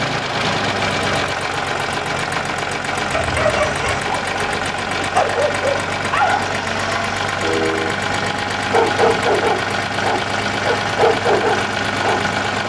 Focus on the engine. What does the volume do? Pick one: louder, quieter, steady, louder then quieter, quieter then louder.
steady.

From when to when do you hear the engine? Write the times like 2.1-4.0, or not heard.
0.0-12.6.